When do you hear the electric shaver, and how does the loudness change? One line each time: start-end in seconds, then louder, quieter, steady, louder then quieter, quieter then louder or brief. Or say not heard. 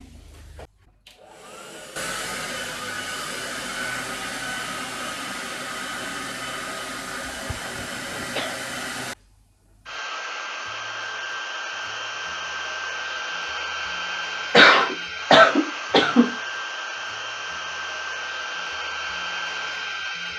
not heard.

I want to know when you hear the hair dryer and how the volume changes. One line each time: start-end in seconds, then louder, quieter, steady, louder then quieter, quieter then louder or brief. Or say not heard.
0.0-20.3 steady.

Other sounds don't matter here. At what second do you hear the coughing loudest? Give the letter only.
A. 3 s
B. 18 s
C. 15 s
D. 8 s
C.